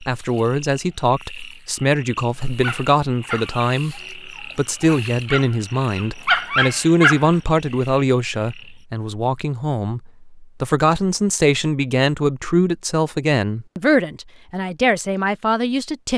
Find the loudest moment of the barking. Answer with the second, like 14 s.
6 s.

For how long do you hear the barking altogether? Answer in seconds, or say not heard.
5 s.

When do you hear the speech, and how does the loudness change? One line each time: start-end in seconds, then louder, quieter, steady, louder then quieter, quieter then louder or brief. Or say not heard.
0.0-16.1 steady.